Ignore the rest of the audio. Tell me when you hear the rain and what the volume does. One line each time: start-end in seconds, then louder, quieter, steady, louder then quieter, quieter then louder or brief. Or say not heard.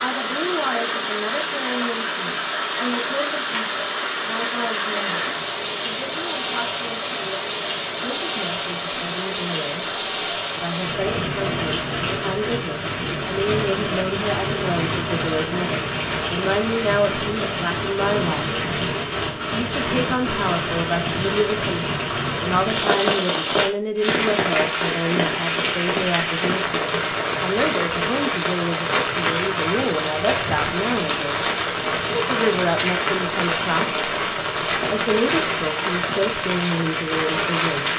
0.0-37.9 steady.